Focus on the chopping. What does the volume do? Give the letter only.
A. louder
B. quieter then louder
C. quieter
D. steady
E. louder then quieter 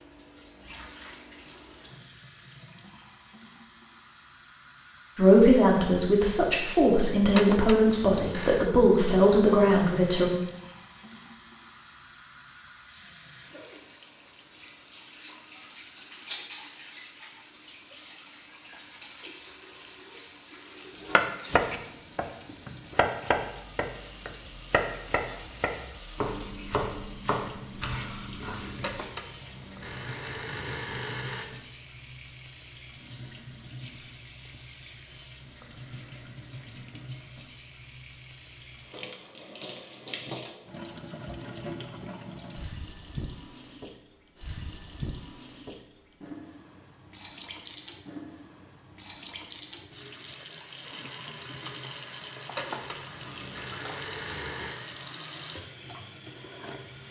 C.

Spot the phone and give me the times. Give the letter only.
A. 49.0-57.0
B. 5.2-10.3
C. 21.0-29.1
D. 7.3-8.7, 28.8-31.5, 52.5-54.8
D.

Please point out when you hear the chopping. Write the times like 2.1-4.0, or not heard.
21.0-29.1.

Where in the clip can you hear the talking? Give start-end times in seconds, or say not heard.
5.2-10.3.